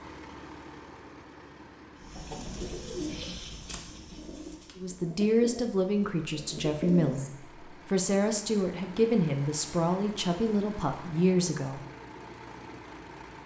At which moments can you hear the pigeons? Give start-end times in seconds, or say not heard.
2.0-7.3.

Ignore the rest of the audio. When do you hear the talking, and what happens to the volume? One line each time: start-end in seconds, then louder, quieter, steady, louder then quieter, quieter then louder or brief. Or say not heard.
4.8-11.8 steady.